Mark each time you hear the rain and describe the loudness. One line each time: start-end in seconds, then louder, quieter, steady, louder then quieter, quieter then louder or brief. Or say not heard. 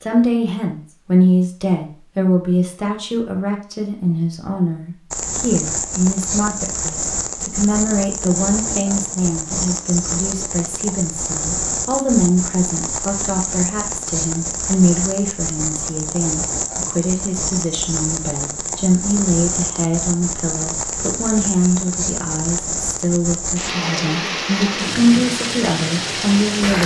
5.1-26.8 steady.